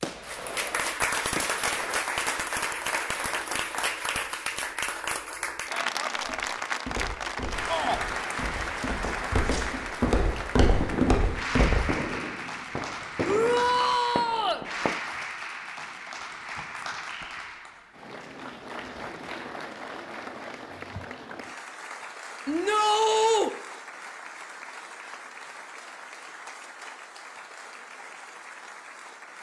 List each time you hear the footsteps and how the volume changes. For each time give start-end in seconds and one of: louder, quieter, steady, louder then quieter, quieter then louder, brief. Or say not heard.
6.2-12.1 quieter then louder.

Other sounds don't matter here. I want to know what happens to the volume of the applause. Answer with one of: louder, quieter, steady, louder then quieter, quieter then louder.
quieter.